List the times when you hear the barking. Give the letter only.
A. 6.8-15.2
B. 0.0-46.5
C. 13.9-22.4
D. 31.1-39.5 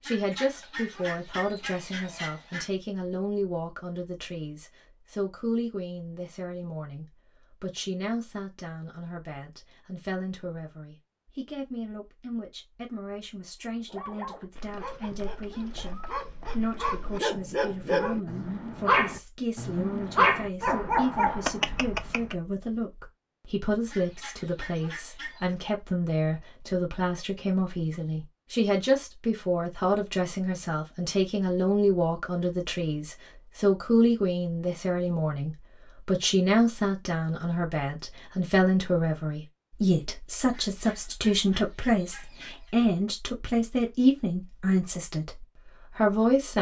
C.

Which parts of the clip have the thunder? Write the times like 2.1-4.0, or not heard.
not heard.